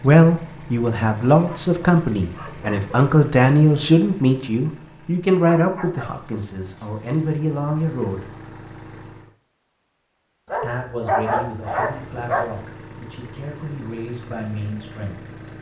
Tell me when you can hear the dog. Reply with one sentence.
The dog can be heard from 1.4 to 3.0 s, from 5.5 to 7.5 s and from 10.4 to 12.6 s.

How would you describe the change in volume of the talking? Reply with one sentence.
The loudness of the talking goes down.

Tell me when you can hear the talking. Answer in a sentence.
You can hear the talking from 0.0 to 8.3 s and from 10.6 to 15.2 s.